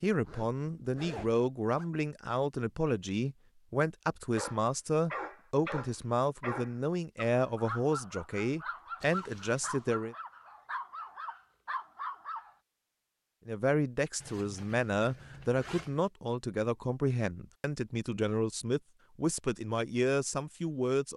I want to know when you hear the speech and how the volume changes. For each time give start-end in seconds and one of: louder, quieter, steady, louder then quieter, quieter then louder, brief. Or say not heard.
0.0-10.2 steady
13.4-21.1 steady.